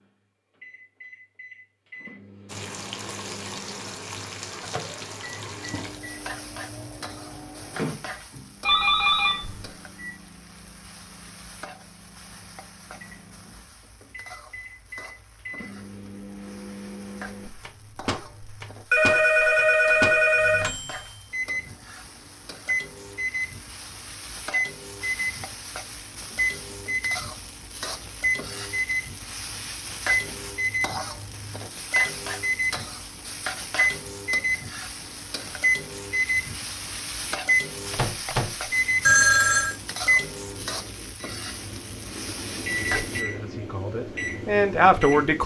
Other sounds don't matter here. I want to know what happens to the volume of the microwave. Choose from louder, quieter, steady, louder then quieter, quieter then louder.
louder.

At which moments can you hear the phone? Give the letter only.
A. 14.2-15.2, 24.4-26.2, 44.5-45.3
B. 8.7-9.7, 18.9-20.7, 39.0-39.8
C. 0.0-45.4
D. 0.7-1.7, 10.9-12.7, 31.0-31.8
B.